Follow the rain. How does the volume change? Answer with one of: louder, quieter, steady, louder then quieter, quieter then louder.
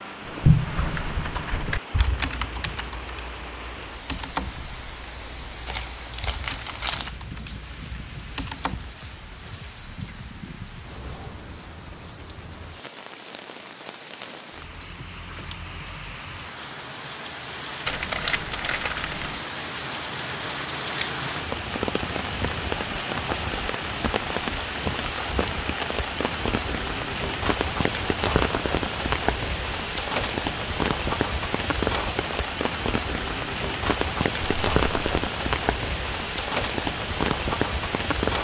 louder.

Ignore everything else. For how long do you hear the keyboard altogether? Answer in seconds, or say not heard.
9 s.